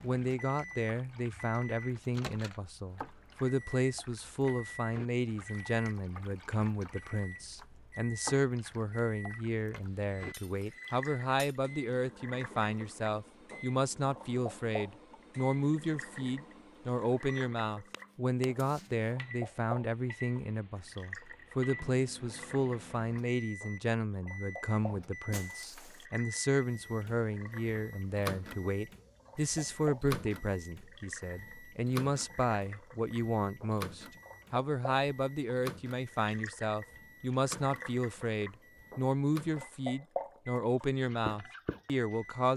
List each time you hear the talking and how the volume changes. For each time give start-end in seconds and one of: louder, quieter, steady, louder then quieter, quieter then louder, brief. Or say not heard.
0.0-42.5 steady.